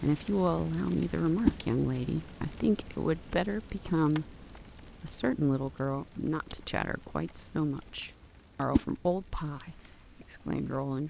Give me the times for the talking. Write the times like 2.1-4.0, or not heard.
0.0-4.3, 5.0-11.0.